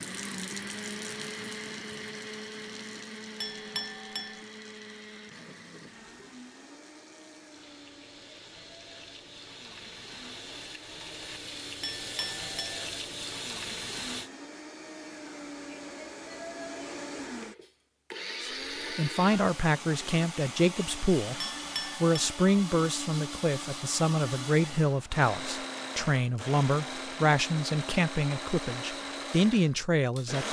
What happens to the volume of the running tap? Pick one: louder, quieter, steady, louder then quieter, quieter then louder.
quieter then louder.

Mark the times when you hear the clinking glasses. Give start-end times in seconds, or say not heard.
3.4-4.4, 11.8-12.8, 21.4-22.1.